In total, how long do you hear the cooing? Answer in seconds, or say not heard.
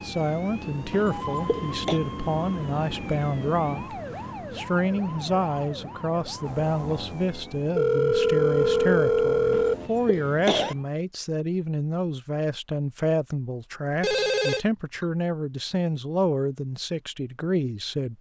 not heard.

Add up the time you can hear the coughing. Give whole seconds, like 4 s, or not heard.
2 s.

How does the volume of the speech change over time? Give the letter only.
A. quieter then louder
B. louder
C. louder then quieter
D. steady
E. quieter
D.